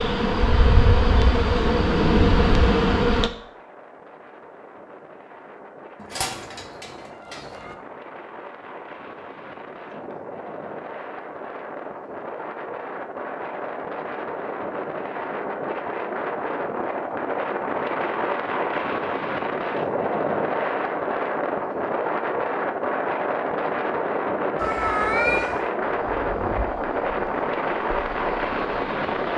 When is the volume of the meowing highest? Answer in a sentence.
The volume of the meowing peaks at 25 seconds.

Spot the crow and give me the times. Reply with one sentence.
The crow can't be heard in this clip.